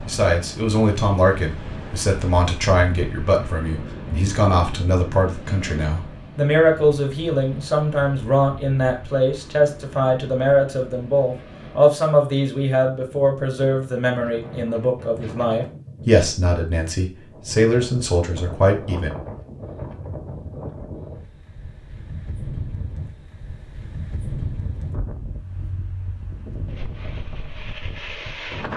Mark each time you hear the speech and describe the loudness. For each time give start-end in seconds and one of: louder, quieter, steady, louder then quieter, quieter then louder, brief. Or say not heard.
0.1-19.1 steady.